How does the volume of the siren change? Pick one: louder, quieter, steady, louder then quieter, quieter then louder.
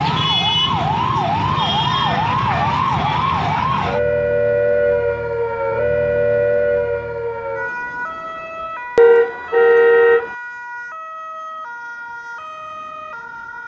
quieter.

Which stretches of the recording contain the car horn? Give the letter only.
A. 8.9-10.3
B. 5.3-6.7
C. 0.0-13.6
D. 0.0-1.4
A.